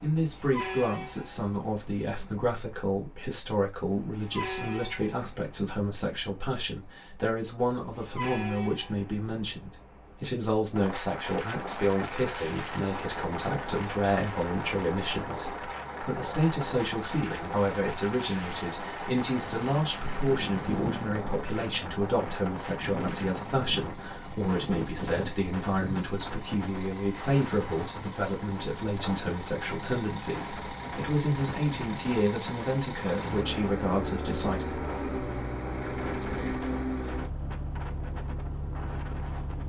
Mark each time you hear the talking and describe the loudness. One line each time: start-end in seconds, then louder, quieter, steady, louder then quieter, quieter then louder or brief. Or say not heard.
0.0-34.8 steady.